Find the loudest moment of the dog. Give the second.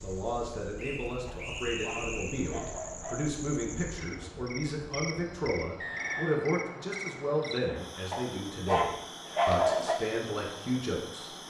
10 s.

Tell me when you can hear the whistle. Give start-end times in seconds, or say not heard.
0.8-2.5, 5.8-6.5.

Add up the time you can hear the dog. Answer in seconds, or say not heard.
4 s.